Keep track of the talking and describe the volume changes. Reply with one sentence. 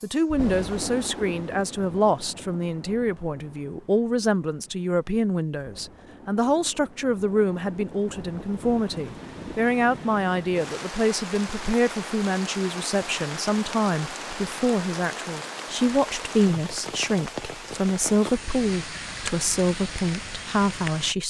The volume of the talking stays about the same.